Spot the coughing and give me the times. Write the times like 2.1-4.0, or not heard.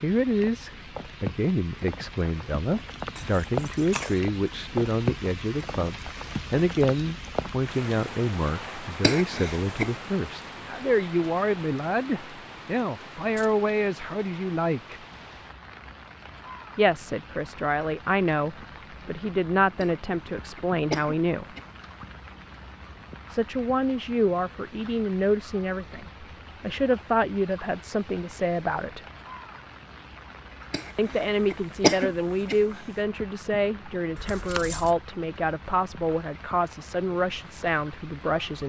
9.0-9.9, 19.8-21.6, 30.7-32.8.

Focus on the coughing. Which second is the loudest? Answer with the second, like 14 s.
32 s.